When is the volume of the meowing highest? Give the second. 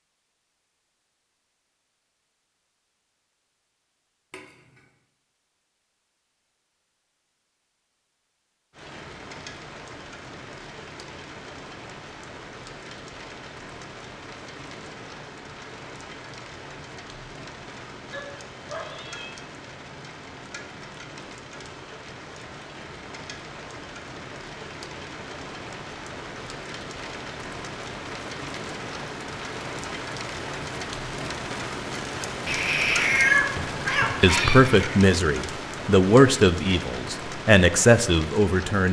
33 s.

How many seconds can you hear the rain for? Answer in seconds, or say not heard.
30 s.